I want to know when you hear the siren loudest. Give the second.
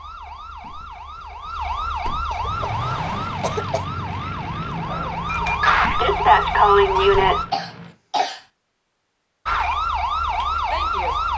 7 s.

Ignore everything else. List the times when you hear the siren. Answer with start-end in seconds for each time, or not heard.
0.0-7.5, 9.4-11.3.